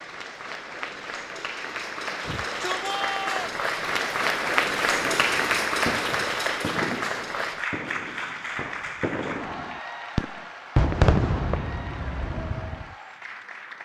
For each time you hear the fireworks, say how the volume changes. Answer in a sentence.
The fireworks can be heard from 4.9 to 12.8 s, getting louder.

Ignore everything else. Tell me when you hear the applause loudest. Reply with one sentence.
The volume of the applause peaks at 5 seconds.